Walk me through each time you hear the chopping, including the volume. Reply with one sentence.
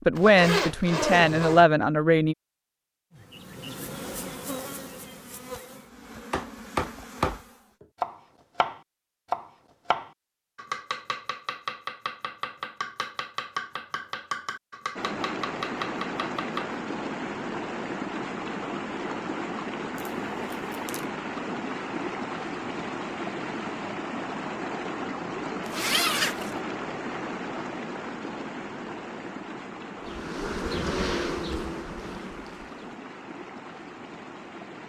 The chopping can be heard from 6.3 to 16.8 s, getting quieter.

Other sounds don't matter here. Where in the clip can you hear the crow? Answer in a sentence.
The crow can't be heard in this clip.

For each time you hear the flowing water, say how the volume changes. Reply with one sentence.
The flowing water can be heard from 14.9 to 34.8 s, getting quieter.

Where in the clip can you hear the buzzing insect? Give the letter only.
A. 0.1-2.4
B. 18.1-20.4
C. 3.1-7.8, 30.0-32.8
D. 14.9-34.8
C.